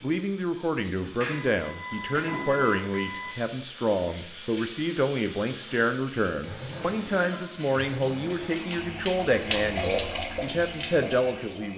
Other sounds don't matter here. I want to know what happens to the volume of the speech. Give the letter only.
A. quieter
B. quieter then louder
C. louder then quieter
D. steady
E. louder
D.